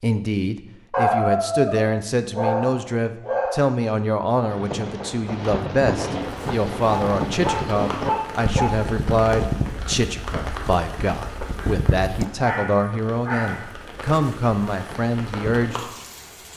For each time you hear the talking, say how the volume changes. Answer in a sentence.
You can hear the talking from 0.0 to 15.8 s, at a steady volume.